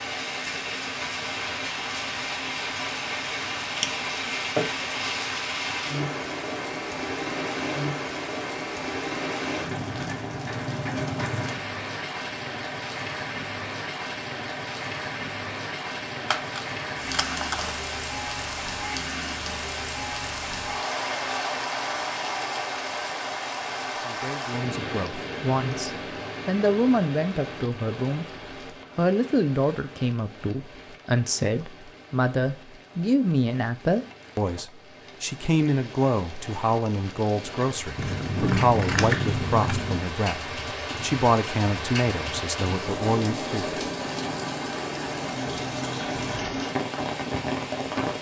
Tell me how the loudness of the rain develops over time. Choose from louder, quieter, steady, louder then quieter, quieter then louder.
quieter then louder.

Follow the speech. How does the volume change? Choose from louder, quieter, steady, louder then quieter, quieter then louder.
steady.